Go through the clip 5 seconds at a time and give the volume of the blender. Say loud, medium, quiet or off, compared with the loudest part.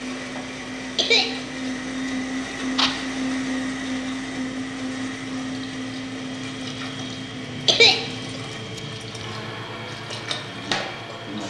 loud, medium, medium.